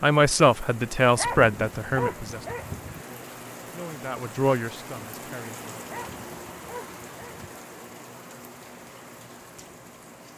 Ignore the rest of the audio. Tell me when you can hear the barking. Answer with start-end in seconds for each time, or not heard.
1.1-3.0, 5.8-7.5.